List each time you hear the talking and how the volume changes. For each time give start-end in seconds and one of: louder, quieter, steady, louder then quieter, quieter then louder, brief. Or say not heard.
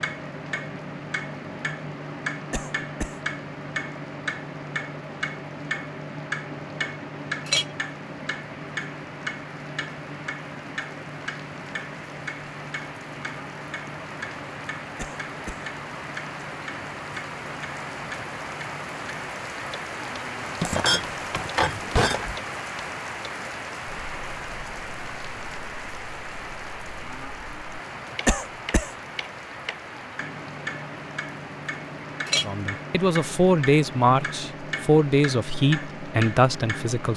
32.5-37.1 steady.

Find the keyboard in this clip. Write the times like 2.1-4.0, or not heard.
not heard.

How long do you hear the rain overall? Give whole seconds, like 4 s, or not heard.
37 s.